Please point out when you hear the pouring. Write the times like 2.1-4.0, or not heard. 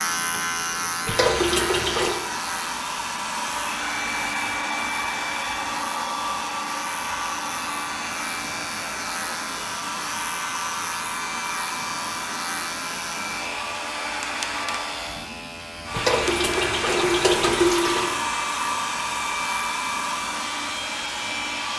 1.1-2.2, 15.9-18.2.